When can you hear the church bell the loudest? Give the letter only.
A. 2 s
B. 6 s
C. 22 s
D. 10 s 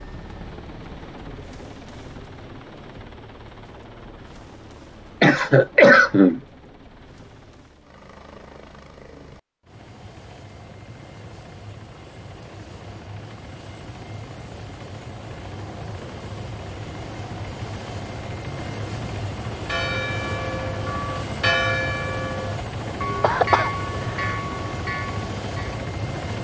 C.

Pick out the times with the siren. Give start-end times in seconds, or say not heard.
not heard.